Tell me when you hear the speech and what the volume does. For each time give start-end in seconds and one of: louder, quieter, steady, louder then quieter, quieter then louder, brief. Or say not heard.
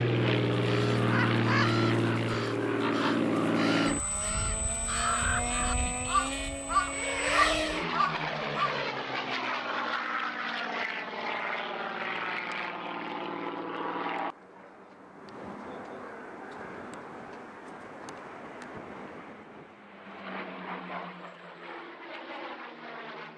not heard.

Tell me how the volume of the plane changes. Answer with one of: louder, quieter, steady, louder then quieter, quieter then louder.
quieter.